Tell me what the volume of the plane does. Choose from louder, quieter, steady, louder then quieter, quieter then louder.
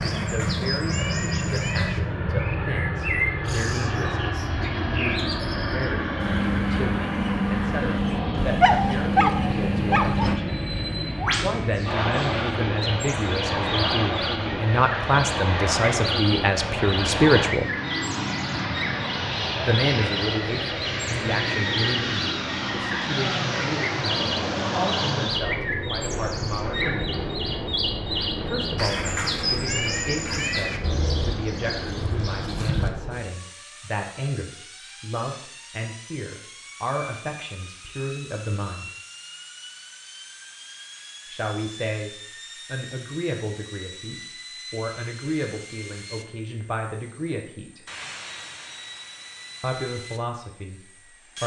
quieter.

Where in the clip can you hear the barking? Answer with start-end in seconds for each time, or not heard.
8.3-10.3.